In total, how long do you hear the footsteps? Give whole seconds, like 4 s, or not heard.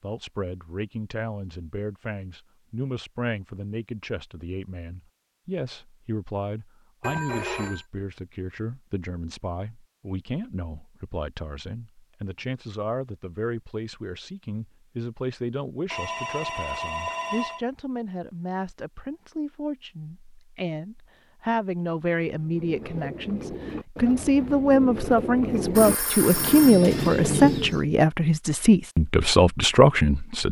not heard.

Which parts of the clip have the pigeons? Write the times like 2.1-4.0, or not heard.
22.3-27.9.